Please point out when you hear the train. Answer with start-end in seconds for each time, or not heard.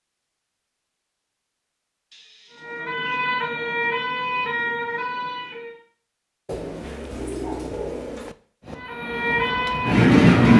8.7-10.5.